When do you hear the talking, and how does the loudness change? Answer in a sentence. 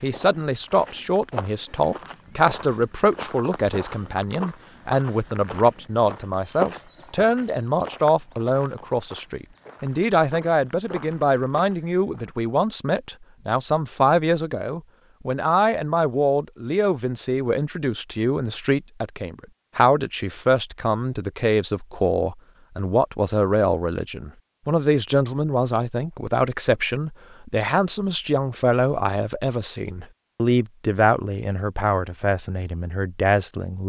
You can hear the talking from 0.0 to 33.8 s, at a steady volume.